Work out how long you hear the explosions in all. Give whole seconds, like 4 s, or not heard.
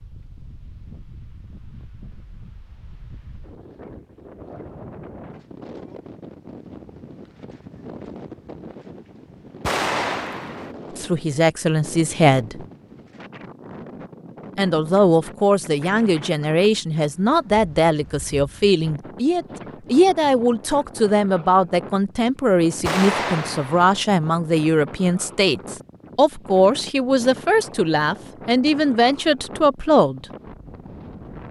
2 s.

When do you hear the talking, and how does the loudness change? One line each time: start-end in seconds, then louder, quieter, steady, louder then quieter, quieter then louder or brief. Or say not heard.
10.9-12.7 brief
14.6-30.2 steady.